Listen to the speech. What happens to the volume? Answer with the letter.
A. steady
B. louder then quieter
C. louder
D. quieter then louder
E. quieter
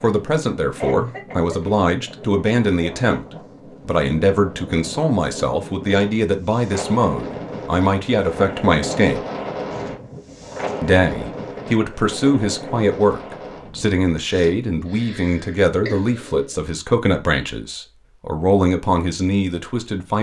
A.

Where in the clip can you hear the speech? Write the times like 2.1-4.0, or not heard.
0.0-3.2, 3.9-9.2, 10.8-20.1.